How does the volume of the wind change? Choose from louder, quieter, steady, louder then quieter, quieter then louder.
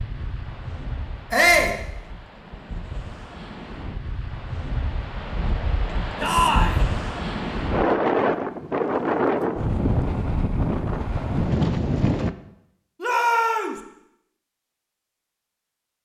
louder.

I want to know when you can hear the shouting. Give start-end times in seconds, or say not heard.
1.3-1.8, 6.2-6.8, 13.0-13.8.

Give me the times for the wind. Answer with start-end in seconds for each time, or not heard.
0.0-12.3.